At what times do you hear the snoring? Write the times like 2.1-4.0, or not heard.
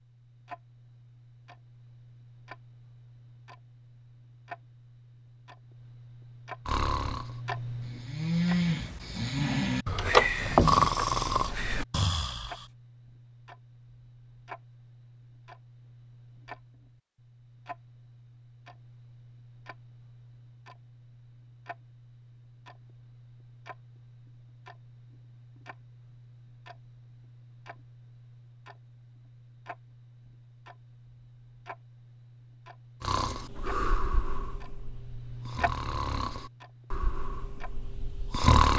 6.7-12.6, 33.0-38.7.